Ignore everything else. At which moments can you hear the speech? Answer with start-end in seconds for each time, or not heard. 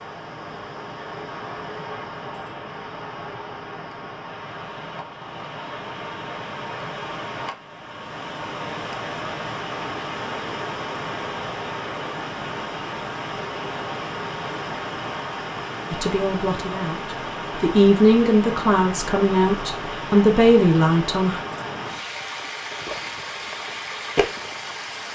15.9-21.4.